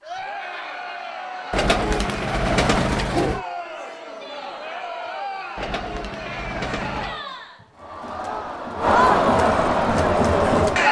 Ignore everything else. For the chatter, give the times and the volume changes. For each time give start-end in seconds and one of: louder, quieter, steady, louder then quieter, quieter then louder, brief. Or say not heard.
0.0-10.8 louder.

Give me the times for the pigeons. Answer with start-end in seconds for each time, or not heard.
1.5-3.5, 5.5-7.2.